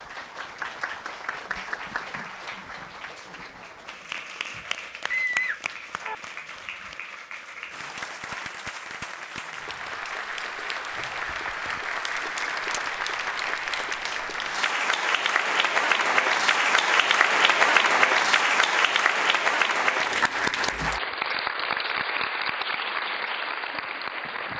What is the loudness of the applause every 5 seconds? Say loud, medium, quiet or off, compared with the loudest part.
quiet, quiet, medium, loud, medium.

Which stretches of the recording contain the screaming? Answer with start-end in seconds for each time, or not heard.
5.1-6.2.